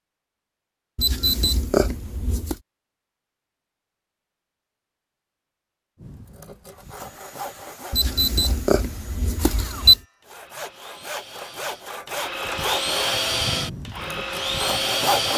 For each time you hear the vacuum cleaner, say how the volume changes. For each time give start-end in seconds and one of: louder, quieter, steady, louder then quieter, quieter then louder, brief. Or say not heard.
6.7-15.3 louder.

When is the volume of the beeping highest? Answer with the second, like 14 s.
10 s.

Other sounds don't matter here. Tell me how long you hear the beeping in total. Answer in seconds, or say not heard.
4 s.